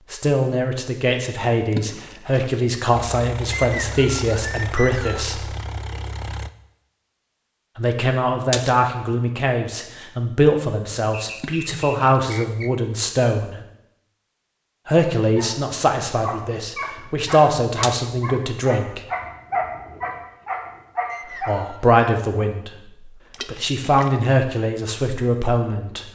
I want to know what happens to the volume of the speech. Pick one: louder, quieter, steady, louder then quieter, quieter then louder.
steady.